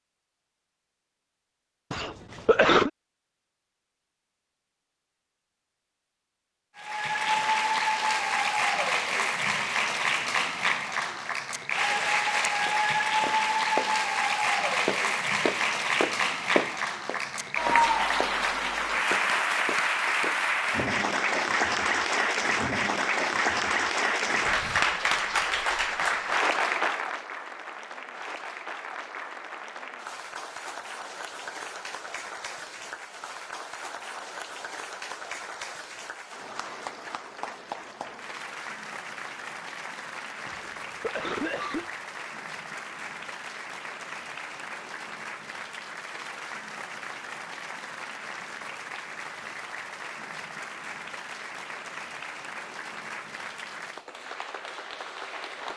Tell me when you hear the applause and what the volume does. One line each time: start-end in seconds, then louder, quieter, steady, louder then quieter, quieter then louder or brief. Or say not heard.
6.8-55.7 quieter.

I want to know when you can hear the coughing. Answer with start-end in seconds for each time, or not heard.
1.9-2.9, 40.5-41.9.